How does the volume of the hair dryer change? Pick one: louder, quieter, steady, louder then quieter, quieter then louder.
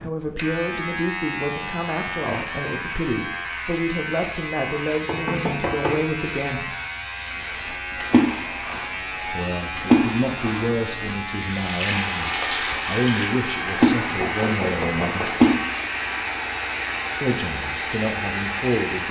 steady.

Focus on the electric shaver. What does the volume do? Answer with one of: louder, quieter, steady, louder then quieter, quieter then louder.
steady.